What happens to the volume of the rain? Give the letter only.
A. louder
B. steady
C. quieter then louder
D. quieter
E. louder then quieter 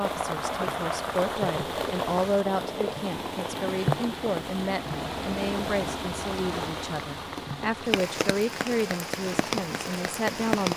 B.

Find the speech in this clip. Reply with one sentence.
You can hear the speech from 0.0 to 10.7 s.